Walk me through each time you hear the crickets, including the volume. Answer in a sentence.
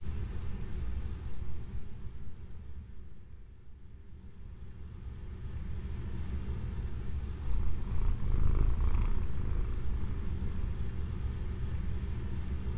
The crickets can be heard from 0.0 to 12.7 s, getting quieter then louder.